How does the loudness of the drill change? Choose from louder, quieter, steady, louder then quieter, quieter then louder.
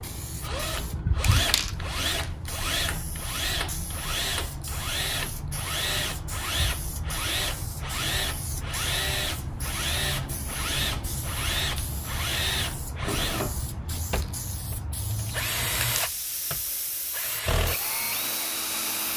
steady.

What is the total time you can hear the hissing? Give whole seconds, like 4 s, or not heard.
19 s.